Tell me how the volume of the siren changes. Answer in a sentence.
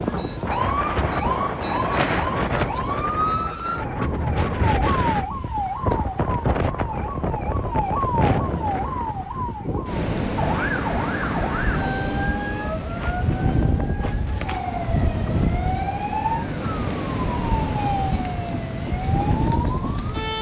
The volume of the siren stays about the same.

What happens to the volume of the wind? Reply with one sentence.
The volume of the wind stays about the same.